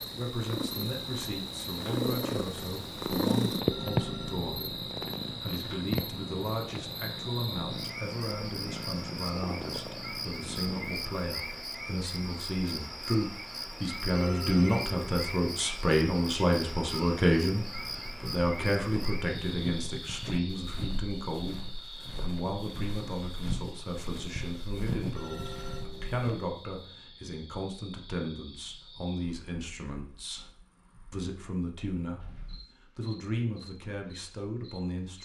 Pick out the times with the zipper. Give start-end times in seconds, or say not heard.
not heard.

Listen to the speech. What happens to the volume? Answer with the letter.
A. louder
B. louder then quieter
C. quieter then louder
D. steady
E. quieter
B.